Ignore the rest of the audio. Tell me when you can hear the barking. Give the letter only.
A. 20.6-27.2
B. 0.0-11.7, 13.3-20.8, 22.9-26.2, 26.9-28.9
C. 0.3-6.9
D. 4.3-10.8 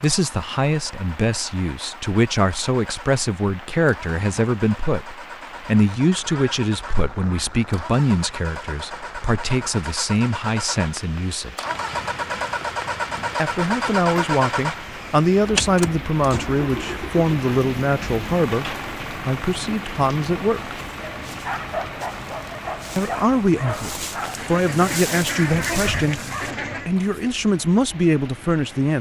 A.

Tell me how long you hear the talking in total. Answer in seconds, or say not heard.
24 s.